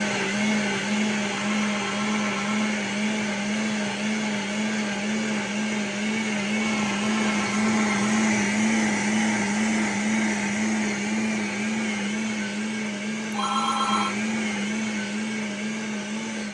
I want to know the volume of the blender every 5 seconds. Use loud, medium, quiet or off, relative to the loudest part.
loud, loud, loud, medium.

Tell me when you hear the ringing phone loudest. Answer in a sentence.
The volume of the ringing phone peaks at 14 seconds.